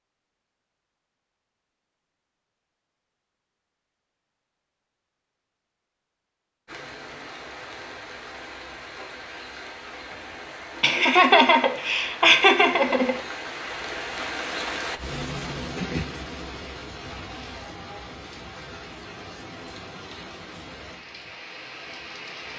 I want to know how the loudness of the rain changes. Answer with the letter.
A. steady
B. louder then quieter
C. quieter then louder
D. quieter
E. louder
B.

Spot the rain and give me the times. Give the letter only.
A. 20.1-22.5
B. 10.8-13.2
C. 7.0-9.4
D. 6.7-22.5
D.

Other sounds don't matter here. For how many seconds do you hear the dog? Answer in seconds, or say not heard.
not heard.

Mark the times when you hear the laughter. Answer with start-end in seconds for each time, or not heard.
10.8-13.2.